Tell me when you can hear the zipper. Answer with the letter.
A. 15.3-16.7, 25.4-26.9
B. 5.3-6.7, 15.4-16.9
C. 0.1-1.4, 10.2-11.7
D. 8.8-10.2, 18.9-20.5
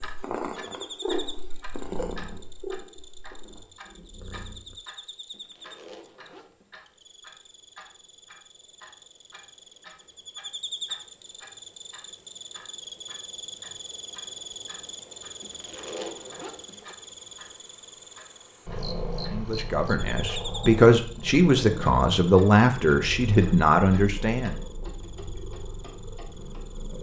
B.